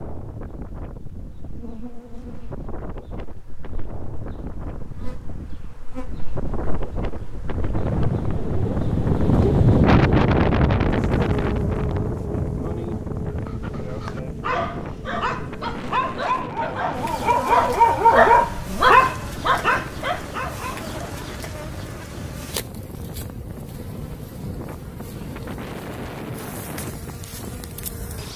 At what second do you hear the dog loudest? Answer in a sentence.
The volume of the dog peaks at 18 seconds.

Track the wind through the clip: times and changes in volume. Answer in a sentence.
You can hear the wind from 0.0 to 28.3 s, getting louder then quieter.